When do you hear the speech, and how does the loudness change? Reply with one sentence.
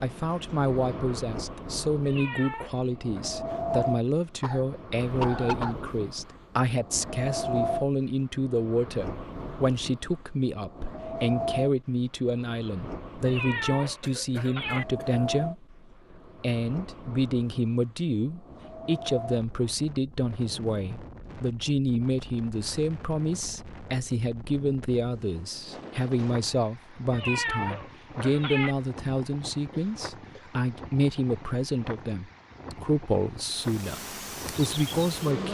The speech can be heard from 0.0 to 35.4 s, at a steady volume.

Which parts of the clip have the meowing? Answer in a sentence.
The meowing can be heard from 2.0 to 3.2 s, from 13.2 to 14.8 s and from 27.1 to 28.8 s.